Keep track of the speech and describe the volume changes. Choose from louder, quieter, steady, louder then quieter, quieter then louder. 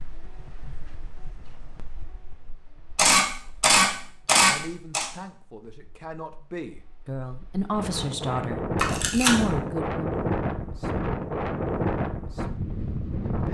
louder.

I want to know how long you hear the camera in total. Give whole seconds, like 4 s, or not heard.
3 s.